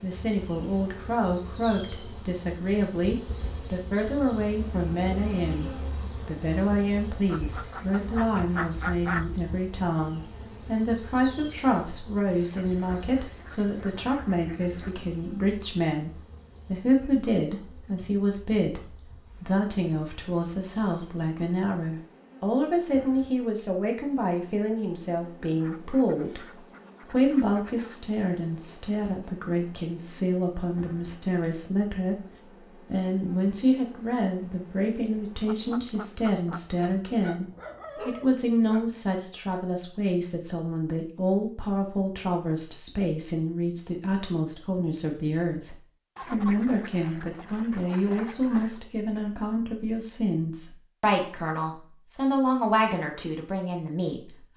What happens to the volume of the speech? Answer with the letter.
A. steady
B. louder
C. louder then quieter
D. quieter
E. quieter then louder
A.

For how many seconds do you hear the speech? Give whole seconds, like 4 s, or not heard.
53 s.